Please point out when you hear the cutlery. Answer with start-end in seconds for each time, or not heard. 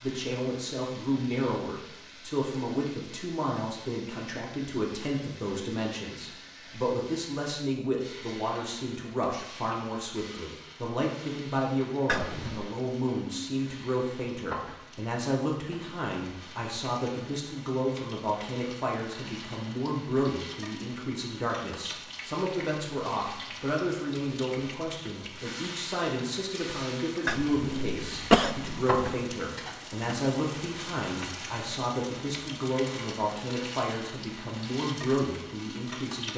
not heard.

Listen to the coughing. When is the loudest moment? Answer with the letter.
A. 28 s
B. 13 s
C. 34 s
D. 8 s
A.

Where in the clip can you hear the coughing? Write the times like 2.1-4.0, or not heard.
12.1-12.7, 27.2-29.1.